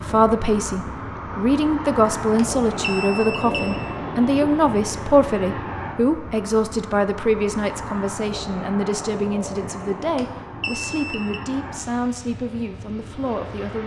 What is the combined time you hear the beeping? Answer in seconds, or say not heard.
3 s.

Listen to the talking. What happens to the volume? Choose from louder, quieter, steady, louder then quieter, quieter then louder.
quieter.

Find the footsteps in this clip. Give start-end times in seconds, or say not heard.
not heard.